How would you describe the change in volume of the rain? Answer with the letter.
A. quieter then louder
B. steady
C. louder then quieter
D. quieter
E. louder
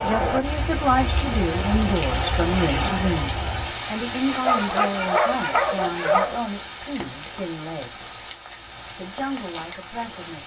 D.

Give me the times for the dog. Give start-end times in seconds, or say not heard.
4.4-6.3.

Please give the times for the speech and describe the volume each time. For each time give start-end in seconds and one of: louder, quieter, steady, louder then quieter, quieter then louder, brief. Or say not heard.
0.0-8.1 quieter
8.8-10.4 brief.